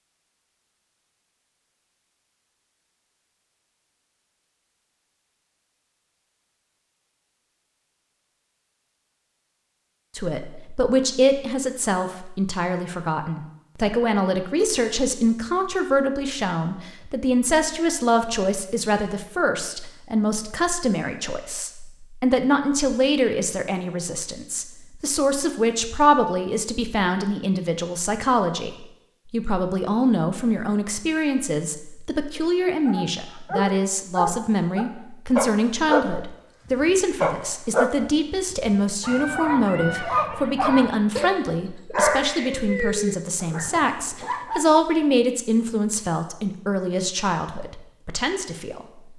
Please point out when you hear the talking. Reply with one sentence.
The talking can be heard from 10.2 to 48.9 s.